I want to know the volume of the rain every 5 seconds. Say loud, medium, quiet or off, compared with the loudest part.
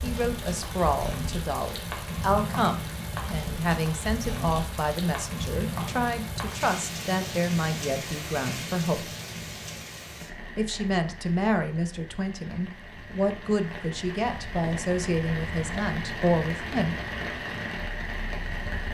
loud, loud, medium, loud.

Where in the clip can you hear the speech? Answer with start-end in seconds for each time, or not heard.
0.0-9.1, 10.6-17.0.